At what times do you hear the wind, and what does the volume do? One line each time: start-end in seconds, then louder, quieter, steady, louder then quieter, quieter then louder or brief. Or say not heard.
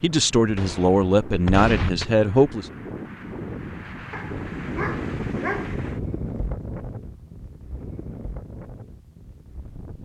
0.0-10.0 louder then quieter.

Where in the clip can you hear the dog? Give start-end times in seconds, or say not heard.
4.1-5.8.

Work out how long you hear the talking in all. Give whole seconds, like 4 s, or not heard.
3 s.